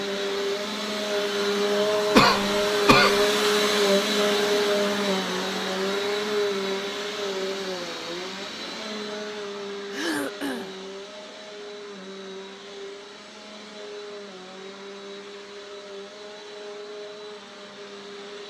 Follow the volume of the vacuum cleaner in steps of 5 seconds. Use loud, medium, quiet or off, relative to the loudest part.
loud, medium, quiet, quiet.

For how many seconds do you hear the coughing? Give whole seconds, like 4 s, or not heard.
2 s.